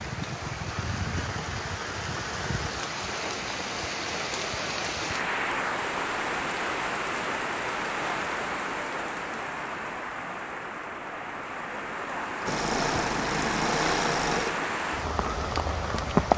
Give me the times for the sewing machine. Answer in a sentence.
You can hear the sewing machine from 12.4 to 14.7 s.